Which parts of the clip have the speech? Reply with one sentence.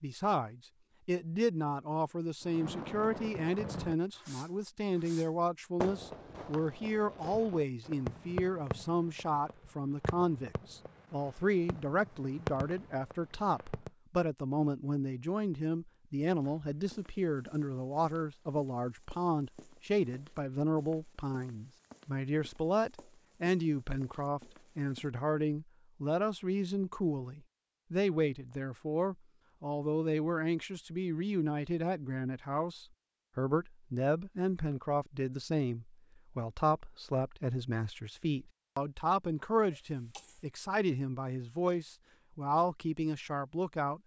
The speech can be heard from 0.0 to 44.0 s.